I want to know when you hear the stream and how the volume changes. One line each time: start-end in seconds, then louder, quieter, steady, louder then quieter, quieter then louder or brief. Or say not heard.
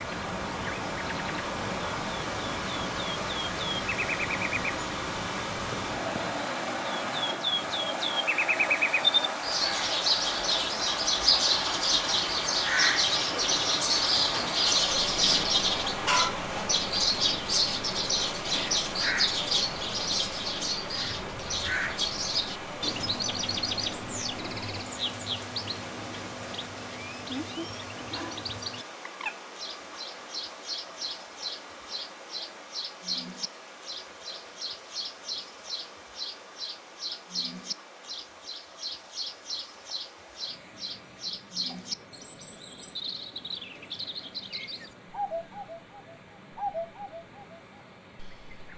0.0-48.7 quieter.